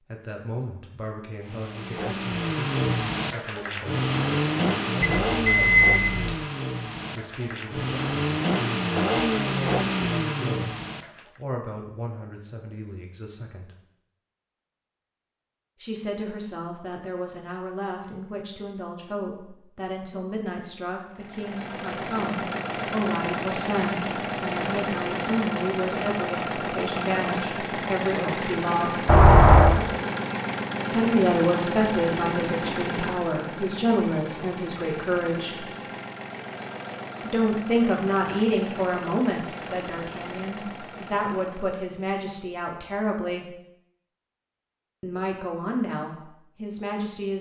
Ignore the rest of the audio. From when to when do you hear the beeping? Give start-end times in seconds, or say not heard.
5.0-6.3, 29.1-29.8.